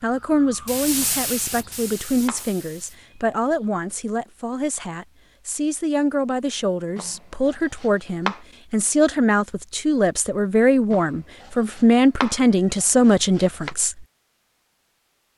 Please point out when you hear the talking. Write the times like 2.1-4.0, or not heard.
0.0-14.1.